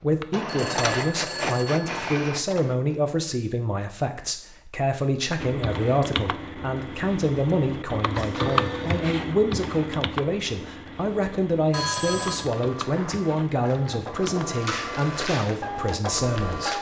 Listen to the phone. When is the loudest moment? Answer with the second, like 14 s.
12 s.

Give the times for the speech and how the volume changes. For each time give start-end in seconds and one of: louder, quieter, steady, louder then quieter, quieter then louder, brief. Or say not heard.
0.0-16.7 steady.